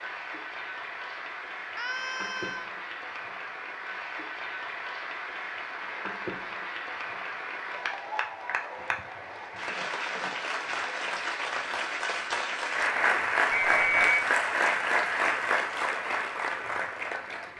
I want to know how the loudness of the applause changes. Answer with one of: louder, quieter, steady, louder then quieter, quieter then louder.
louder.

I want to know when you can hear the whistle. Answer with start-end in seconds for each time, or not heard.
13.5-14.2.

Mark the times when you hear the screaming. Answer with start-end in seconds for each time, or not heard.
1.8-2.7.